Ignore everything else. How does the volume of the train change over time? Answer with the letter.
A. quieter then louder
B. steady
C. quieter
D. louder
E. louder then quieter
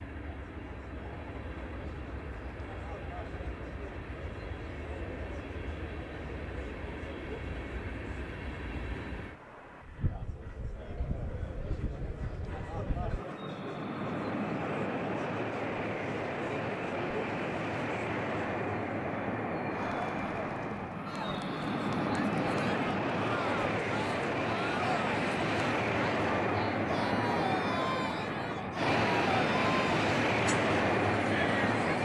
D.